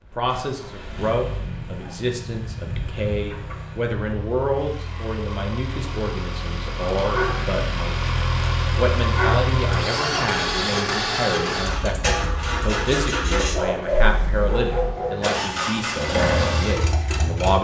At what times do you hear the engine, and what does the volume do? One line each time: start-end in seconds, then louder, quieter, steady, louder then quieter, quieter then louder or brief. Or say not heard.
0.0-17.5 louder.